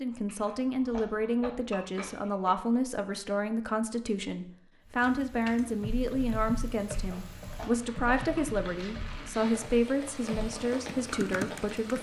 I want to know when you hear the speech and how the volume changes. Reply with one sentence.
The speech can be heard from 0.0 to 11.9 s, at a steady volume.